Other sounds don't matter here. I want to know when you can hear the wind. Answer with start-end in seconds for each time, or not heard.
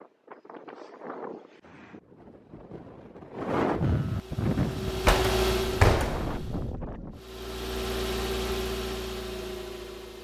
0.0-7.2.